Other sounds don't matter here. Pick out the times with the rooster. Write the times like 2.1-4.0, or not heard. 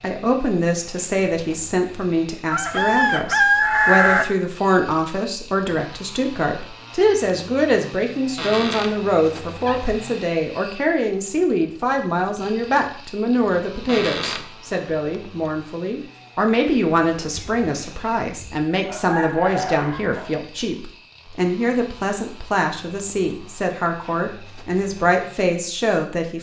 2.5-4.2, 17.4-20.4.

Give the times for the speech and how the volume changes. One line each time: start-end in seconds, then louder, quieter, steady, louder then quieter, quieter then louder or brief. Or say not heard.
0.0-26.3 steady.